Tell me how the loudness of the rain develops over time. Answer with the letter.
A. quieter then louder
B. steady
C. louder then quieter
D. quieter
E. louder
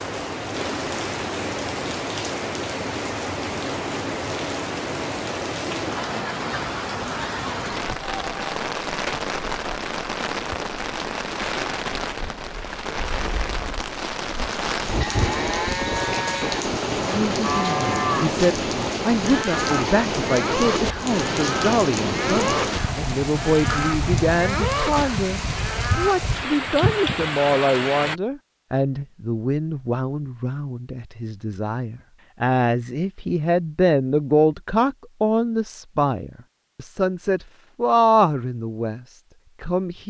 B.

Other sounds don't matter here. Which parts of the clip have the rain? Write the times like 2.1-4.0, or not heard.
0.0-28.1.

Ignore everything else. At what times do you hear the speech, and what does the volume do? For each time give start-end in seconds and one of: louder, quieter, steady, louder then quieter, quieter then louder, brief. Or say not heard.
17.1-40.0 steady.